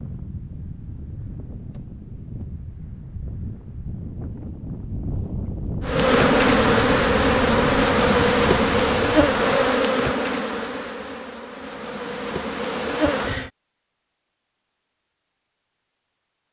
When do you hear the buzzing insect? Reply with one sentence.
You can hear the buzzing insect from 5.8 to 13.5 s.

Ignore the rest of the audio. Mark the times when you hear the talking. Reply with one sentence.
The talking can't be heard in this clip.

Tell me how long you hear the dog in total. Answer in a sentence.
The dog can't be heard in this clip.